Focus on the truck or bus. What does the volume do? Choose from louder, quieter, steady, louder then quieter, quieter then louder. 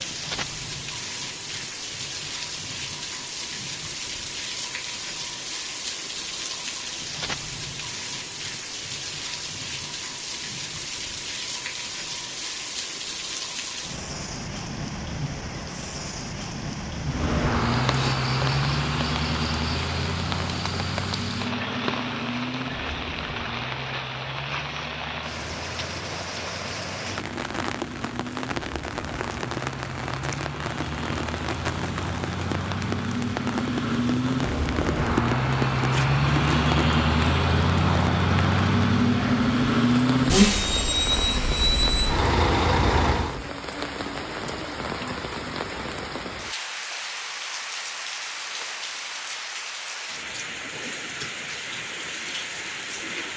quieter then louder.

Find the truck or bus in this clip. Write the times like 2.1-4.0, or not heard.
17.1-43.4.